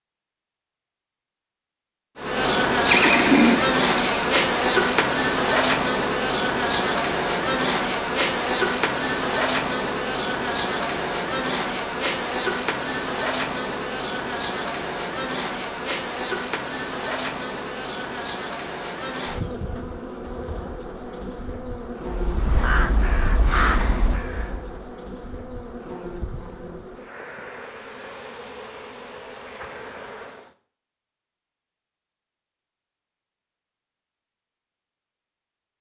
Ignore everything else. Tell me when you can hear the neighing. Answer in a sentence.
You can hear the neighing from 2.9 to 4.3 s.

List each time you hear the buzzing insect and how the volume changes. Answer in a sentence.
The buzzing insect can be heard from 2.1 to 30.6 s, getting quieter.